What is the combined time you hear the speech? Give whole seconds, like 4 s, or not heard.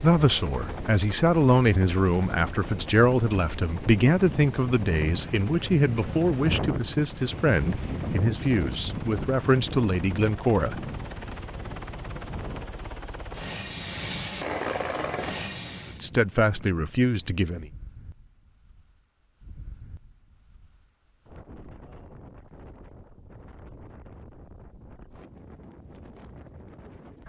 13 s.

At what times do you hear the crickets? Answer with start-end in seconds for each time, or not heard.
not heard.